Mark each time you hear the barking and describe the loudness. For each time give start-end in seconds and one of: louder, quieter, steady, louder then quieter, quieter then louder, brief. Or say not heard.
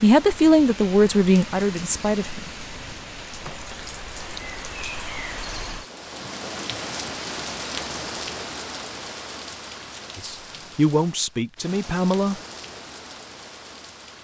not heard.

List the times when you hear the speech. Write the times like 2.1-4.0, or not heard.
0.0-2.5, 10.2-12.4.